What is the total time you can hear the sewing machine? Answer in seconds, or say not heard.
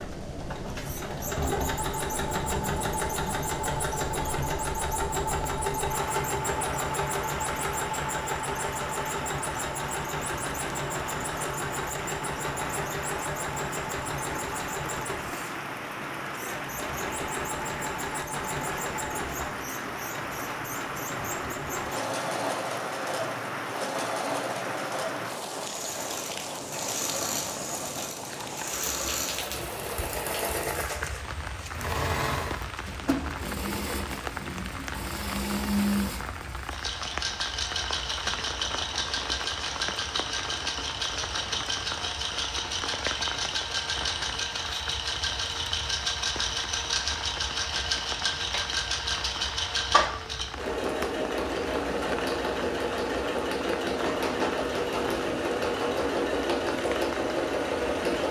58 s.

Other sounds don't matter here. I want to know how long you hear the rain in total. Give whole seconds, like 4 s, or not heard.
58 s.